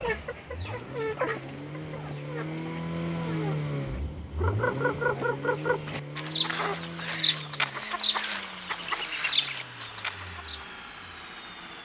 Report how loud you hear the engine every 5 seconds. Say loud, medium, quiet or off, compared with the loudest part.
loud, medium, medium.